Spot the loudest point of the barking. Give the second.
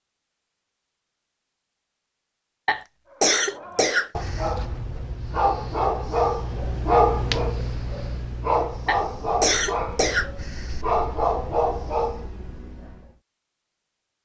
7 s.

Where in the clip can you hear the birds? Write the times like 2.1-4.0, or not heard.
not heard.